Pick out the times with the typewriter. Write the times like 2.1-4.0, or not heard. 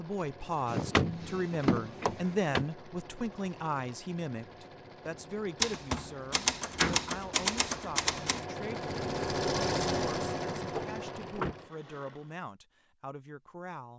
5.6-8.4.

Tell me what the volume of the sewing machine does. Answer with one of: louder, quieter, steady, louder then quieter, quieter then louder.
louder.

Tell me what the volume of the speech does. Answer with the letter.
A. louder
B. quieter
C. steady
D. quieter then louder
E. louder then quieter
B.